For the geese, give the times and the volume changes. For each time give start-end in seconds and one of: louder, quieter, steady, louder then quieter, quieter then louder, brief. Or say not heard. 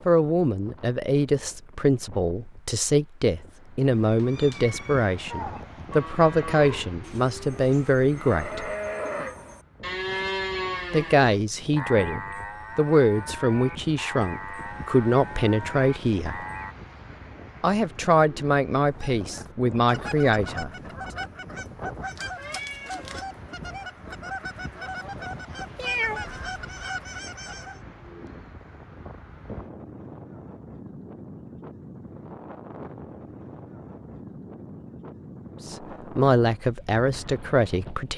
18.9-27.8 steady.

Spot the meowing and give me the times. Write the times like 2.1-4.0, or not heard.
3.8-5.2, 22.1-23.2, 25.8-26.9.